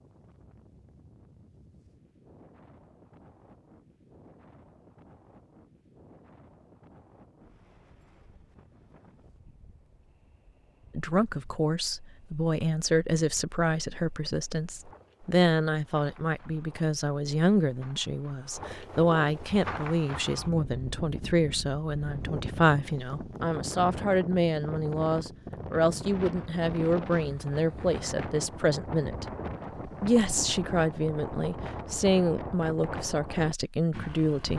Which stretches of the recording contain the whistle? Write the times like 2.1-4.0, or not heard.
not heard.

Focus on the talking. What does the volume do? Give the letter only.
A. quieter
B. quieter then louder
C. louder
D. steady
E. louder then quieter
D.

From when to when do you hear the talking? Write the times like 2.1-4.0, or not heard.
10.9-29.2, 29.9-34.5.